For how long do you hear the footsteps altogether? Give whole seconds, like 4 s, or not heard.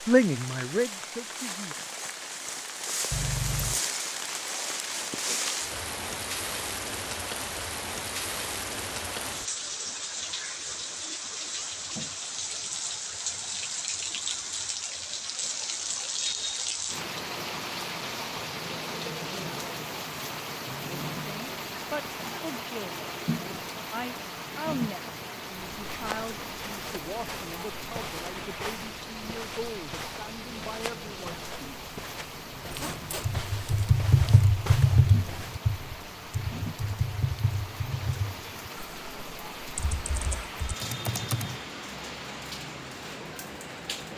10 s.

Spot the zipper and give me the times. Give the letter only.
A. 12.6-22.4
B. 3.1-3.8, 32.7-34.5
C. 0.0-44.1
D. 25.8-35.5
B.